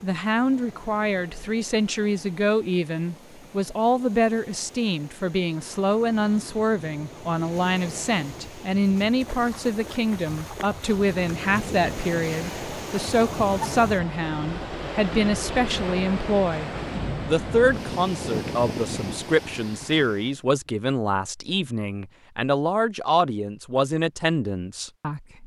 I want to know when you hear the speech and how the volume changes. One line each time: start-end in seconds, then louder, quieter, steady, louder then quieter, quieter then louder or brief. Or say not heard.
0.0-25.4 steady.